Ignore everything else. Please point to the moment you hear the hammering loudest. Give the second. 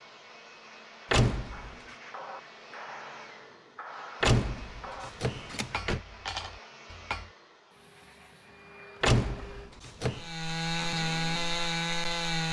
6 s.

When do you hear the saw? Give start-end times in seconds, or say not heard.
10.1-12.4.